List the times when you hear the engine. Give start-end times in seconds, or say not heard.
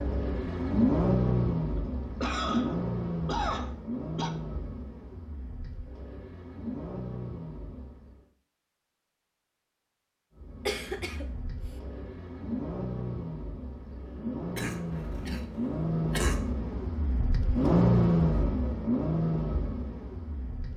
0.0-8.3, 10.3-20.7.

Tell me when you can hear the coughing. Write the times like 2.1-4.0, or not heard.
2.2-4.3, 10.7-11.2, 14.6-16.4.